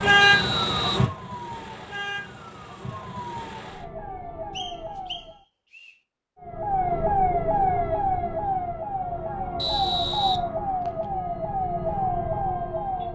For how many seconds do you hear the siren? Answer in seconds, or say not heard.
12 s.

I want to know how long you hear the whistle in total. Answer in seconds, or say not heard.
4 s.